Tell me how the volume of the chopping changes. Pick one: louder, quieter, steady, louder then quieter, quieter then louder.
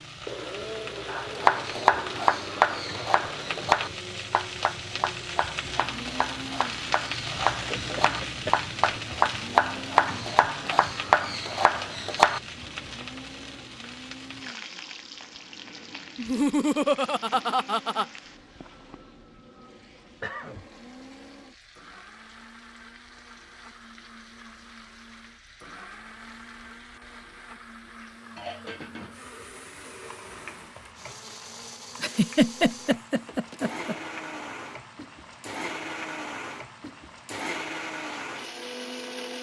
quieter then louder.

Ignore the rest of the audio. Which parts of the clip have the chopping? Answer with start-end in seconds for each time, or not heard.
1.1-12.4.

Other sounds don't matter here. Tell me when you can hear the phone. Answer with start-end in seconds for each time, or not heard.
not heard.